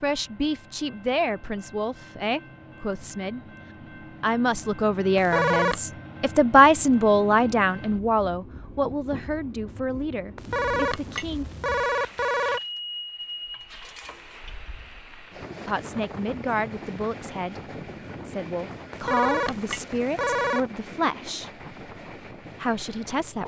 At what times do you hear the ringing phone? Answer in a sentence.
The ringing phone can be heard from 5.2 to 5.8 s, from 10.3 to 12.6 s and from 18.9 to 20.6 s.